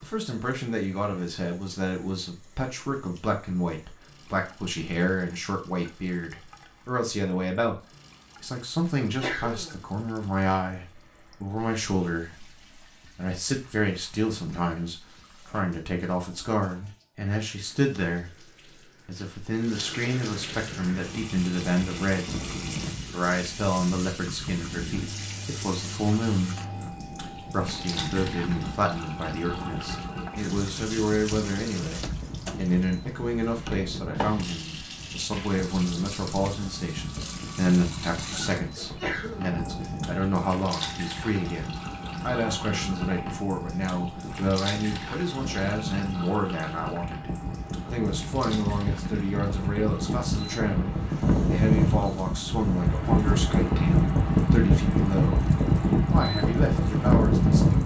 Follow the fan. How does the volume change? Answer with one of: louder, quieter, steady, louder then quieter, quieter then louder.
louder.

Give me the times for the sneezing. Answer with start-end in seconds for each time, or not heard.
9.0-9.8, 38.8-39.5.